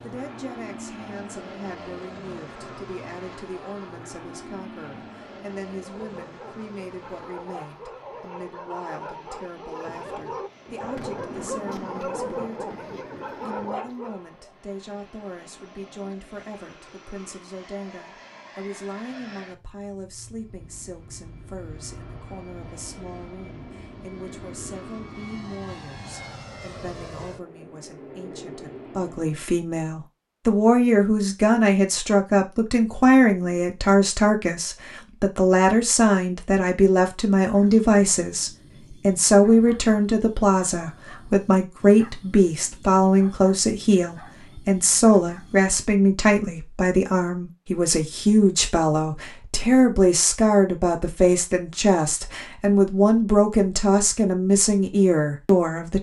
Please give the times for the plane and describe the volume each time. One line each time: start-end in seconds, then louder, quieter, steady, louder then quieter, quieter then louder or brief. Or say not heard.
0.0-29.4 quieter then louder.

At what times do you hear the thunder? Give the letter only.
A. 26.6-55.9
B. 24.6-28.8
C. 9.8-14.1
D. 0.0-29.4
C.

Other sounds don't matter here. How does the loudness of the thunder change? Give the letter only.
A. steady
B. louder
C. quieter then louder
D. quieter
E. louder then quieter
E.